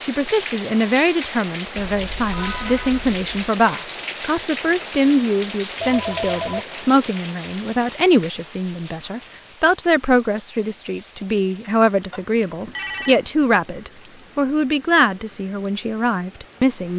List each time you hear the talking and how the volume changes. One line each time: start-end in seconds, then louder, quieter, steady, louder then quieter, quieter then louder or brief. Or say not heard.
0.0-16.9 steady.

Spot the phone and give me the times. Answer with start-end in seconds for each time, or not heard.
1.8-3.2, 5.8-6.7, 12.1-13.2.